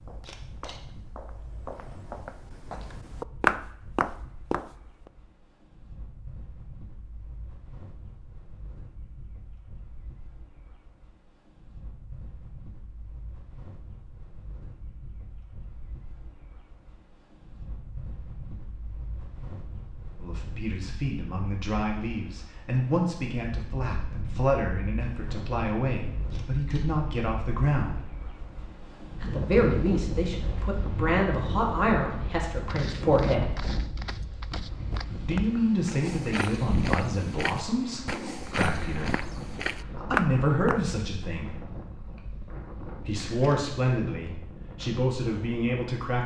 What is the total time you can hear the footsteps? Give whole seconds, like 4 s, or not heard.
13 s.